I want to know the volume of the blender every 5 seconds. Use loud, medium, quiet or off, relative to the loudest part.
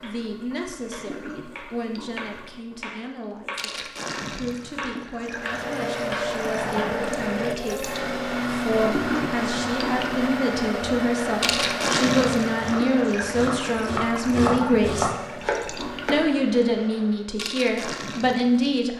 off, loud, loud, quiet.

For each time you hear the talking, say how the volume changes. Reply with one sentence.
You can hear the talking from 0.0 to 15.1 s, getting louder; and briefly from 16.1 to 18.9 s.